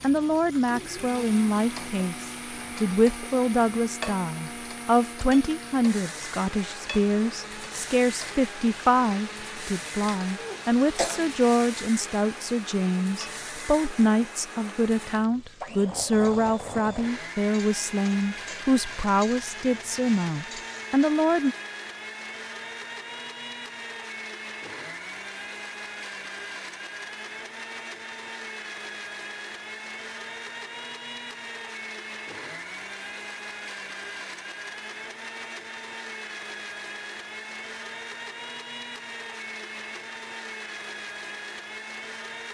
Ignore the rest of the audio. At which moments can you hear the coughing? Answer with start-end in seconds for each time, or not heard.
10.3-11.3.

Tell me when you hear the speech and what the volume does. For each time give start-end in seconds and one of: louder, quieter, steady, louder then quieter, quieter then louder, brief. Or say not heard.
0.0-21.6 steady.